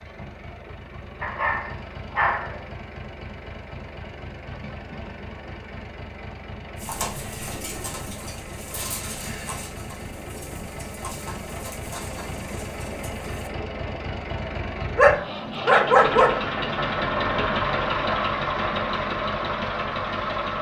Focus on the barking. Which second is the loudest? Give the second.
16 s.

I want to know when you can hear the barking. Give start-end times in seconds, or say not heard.
1.2-2.6, 14.9-16.4.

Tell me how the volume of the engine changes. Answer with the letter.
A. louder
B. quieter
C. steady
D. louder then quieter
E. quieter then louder
A.